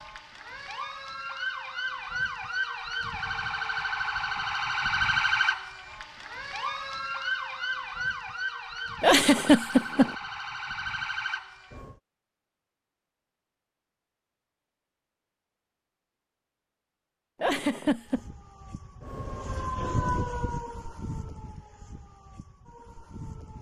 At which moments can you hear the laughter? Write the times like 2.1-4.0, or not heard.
9.0-10.2, 17.4-18.2.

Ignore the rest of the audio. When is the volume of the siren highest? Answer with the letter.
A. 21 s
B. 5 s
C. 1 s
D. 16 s
B.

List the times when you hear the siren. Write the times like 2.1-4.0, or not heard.
0.0-12.0, 17.9-23.5.